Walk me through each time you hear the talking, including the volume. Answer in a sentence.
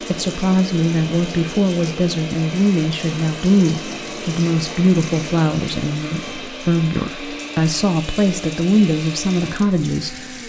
The talking can be heard from 0.1 to 10.3 s, at a steady volume.